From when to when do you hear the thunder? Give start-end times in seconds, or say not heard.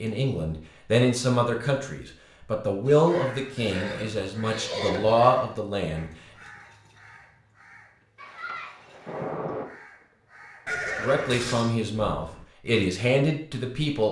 8.2-9.7.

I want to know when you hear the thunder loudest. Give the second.
9 s.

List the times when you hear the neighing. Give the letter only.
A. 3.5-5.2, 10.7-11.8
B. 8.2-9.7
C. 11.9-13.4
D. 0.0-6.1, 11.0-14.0
A.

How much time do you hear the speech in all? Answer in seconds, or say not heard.
9 s.